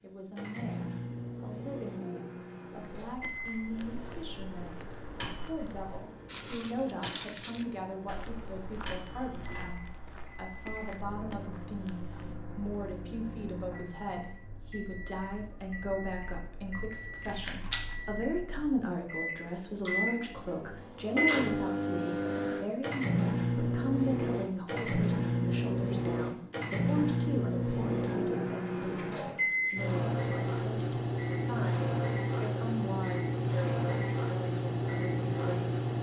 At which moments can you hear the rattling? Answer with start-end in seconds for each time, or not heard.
17.2-17.9.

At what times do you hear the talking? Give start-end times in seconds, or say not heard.
0.0-35.8.